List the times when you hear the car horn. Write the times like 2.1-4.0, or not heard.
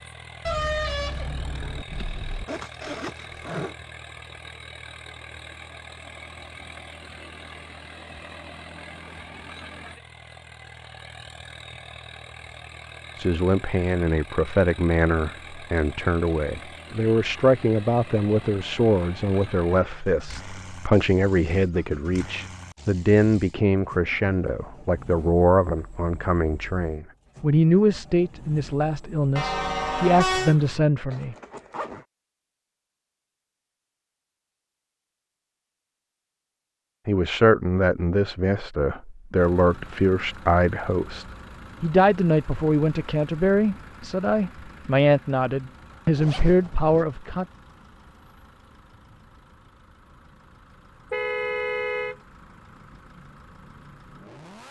0.5-2.5, 29.4-30.6, 51.1-52.1.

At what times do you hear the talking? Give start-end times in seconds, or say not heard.
13.2-31.4, 37.0-47.5.